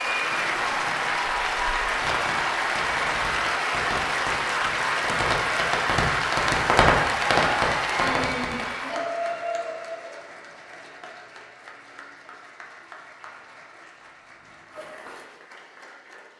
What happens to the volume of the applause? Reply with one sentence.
The volume of the applause goes down.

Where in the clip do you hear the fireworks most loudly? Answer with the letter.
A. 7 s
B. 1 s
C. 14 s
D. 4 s
A.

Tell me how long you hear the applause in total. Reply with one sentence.
You can hear the applause for 16 seconds altogether.